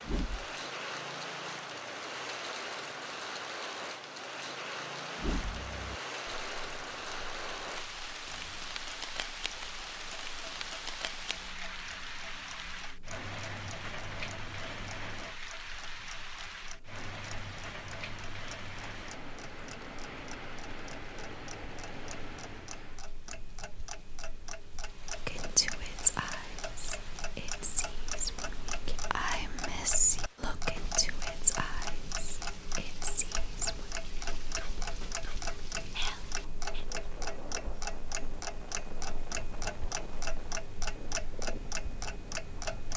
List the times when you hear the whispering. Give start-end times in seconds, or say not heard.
25.2-36.9.